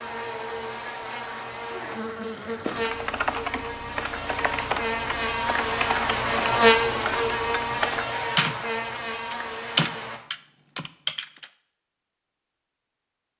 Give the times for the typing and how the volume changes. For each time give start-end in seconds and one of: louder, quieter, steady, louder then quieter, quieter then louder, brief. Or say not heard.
2.6-11.5 louder.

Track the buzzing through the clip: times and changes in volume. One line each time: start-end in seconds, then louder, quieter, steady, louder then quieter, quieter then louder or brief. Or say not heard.
0.0-10.2 louder then quieter.